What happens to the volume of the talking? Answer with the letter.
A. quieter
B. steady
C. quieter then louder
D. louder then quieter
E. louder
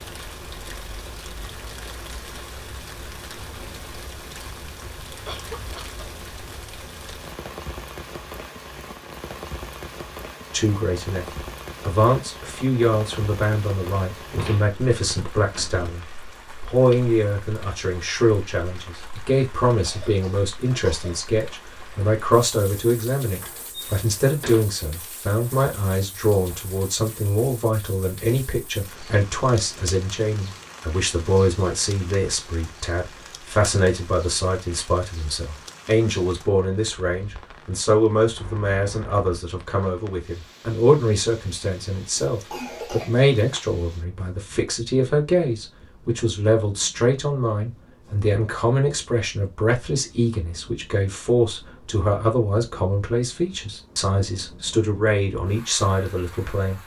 B.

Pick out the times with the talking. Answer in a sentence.
You can hear the talking from 10.5 to 56.8 s.